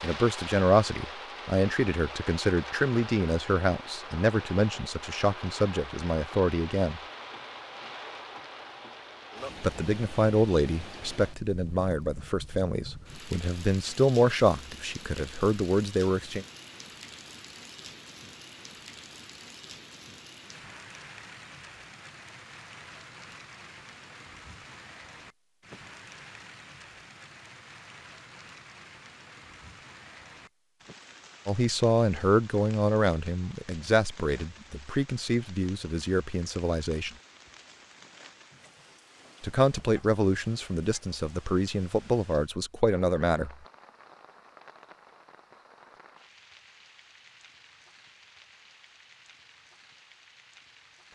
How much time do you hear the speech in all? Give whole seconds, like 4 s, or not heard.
24 s.